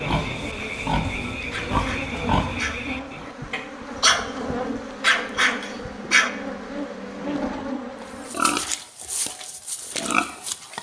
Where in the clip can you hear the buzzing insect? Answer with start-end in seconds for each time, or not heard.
0.0-8.3.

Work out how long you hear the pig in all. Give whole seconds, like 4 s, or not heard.
6 s.